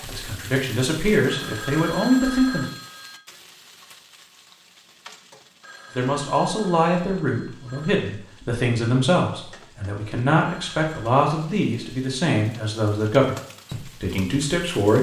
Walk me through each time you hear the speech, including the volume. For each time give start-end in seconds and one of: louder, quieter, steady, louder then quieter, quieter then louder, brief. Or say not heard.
0.0-2.6 brief
6.0-14.9 steady.